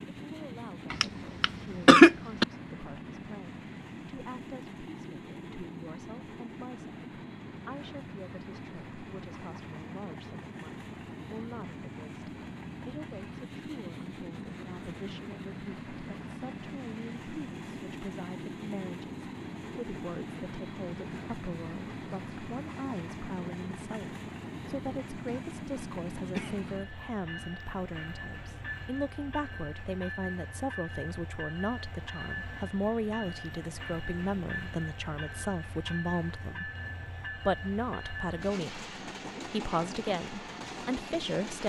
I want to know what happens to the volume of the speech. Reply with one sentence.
The volume of the speech goes up.